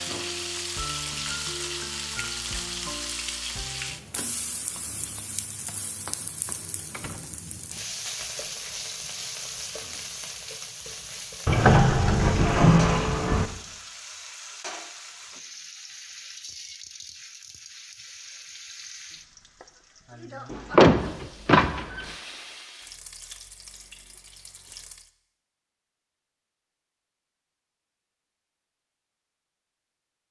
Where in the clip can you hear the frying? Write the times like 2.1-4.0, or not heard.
0.0-25.1.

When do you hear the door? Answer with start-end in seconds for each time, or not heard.
6.9-7.8, 11.4-13.4, 20.5-22.1.